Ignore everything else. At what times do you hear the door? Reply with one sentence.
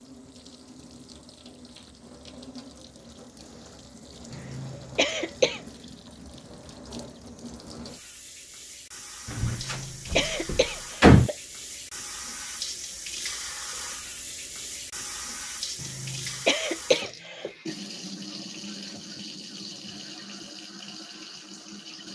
The door can be heard from 9.3 to 11.3 s.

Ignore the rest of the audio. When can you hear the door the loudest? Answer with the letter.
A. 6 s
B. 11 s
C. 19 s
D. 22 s
B.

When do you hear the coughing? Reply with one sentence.
You can hear the coughing from 4.3 to 5.6 s, from 9.4 to 11.3 s and from 15.8 to 17.4 s.